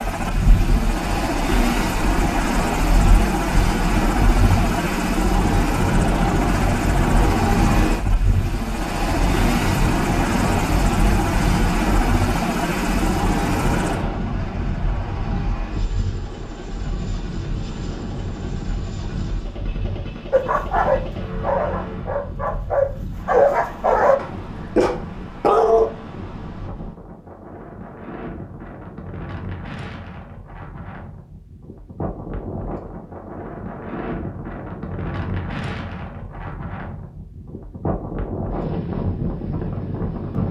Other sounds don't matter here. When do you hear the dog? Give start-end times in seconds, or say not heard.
20.3-25.9.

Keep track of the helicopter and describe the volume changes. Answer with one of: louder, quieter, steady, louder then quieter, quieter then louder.
quieter.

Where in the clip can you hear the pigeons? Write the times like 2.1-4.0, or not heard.
not heard.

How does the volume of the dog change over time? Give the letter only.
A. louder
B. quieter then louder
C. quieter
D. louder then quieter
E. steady
B.